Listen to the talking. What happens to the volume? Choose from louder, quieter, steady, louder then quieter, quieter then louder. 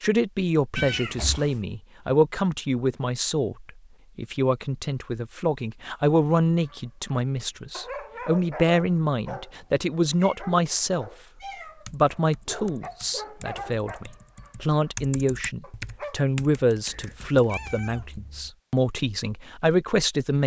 steady.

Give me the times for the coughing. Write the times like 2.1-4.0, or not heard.
not heard.